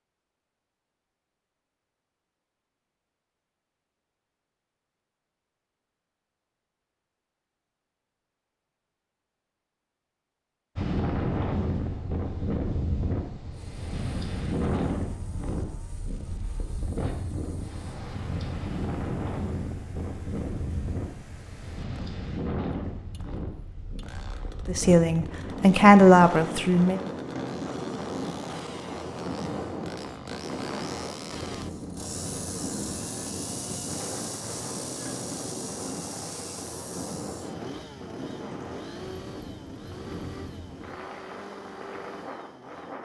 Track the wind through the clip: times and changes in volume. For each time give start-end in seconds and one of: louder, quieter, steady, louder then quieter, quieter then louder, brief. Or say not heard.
10.8-43.0 quieter.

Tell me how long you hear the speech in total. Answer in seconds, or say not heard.
2 s.